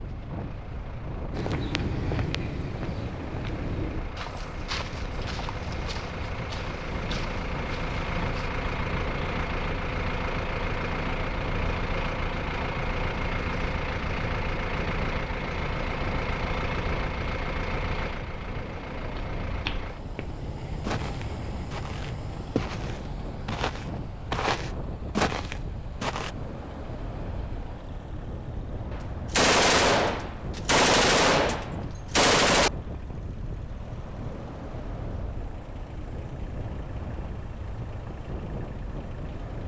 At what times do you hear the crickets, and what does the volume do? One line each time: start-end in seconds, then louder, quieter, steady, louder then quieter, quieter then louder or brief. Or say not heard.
not heard.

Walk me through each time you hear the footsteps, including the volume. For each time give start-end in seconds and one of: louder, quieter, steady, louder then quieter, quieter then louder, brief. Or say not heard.
1.4-8.5 quieter
19.1-26.3 louder.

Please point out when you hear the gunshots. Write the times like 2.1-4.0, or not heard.
28.9-32.7.